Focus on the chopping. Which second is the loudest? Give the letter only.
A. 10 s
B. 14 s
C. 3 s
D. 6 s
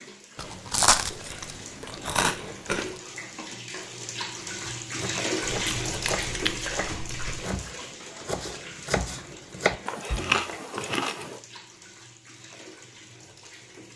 A.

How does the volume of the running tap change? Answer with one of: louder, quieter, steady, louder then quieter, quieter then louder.
louder then quieter.